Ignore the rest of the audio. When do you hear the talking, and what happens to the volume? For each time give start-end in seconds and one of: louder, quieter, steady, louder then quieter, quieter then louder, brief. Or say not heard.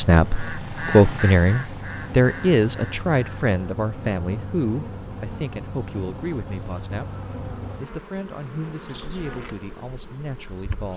0.0-10.9 quieter.